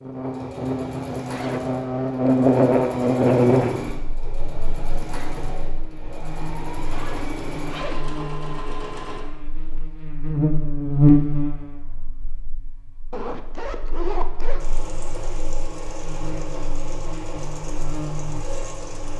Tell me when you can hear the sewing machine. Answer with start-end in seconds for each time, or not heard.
0.0-9.2, 14.6-19.1.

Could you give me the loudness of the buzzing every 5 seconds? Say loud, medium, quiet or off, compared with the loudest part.
loud, quiet, loud, quiet.